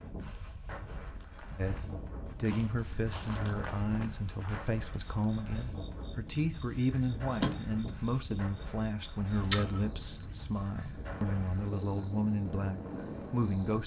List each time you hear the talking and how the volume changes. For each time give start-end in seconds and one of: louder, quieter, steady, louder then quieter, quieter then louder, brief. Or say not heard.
1.6-13.8 steady.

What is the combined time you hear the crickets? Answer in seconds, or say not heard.
9 s.